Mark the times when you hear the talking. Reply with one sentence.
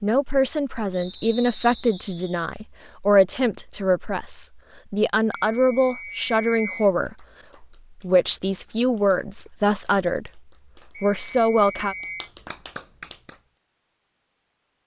The talking can be heard from 0.0 to 10.4 s and from 11.0 to 11.9 s.